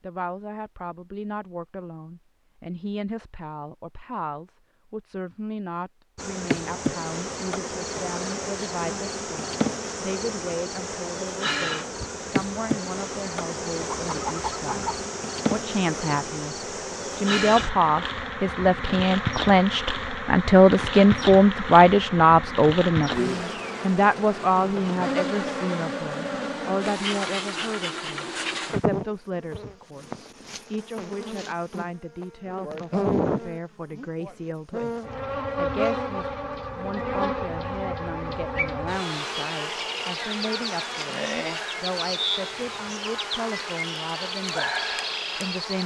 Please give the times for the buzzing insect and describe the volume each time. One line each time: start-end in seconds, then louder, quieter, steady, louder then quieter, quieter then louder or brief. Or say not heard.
6.2-45.8 steady.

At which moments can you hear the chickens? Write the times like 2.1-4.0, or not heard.
13.8-15.1.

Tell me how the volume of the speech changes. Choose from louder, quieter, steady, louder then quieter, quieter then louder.
louder then quieter.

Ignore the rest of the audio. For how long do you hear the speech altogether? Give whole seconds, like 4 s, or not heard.
45 s.